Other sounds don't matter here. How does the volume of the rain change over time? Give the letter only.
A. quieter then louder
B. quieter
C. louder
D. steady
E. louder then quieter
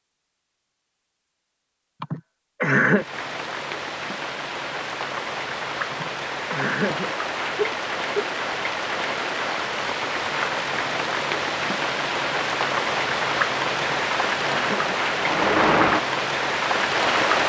C.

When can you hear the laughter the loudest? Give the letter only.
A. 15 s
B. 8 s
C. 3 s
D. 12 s
C.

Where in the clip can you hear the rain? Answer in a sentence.
The rain can be heard from 2.9 to 17.4 s.